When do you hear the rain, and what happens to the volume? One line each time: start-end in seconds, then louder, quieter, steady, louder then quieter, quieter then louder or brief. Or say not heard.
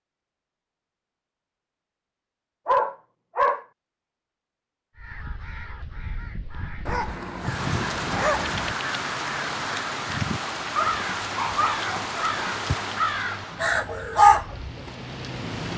7.4-15.7 quieter.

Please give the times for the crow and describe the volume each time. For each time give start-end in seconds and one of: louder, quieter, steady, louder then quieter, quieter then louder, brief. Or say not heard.
5.0-14.8 louder.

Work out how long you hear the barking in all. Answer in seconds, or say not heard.
5 s.